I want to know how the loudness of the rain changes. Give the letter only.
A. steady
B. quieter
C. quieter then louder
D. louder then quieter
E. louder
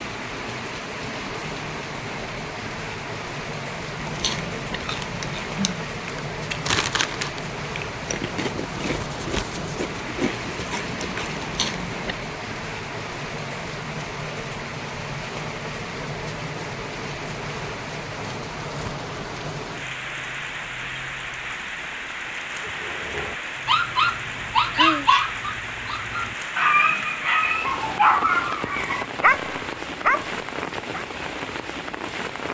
A.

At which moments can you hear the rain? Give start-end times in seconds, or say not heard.
0.0-32.4.